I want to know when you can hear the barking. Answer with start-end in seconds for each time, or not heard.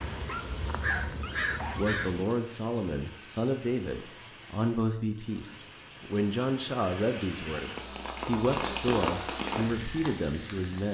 0.2-1.9.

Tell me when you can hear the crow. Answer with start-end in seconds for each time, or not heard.
0.0-2.2.